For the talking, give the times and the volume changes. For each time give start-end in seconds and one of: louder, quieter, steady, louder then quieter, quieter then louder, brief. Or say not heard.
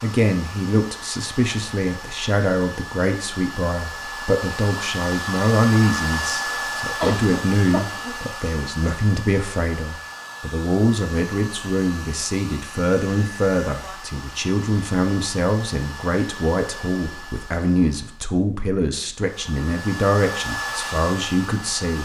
0.0-22.0 steady.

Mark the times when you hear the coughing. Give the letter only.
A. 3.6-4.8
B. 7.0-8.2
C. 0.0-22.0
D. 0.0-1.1
B.